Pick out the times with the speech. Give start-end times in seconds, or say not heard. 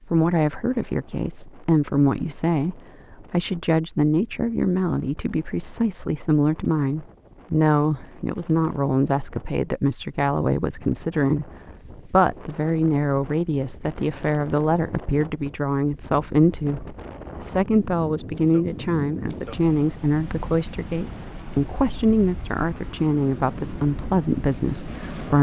0.1-25.3.